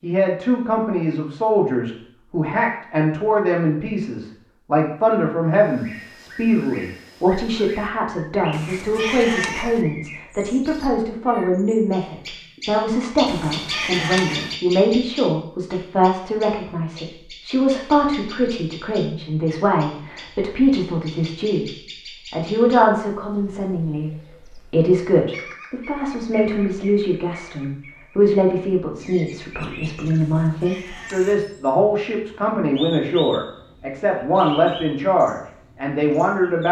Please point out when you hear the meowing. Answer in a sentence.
The meowing can be heard from 8.5 to 9.8 s, from 13.2 to 14.6 s and from 30.1 to 31.4 s.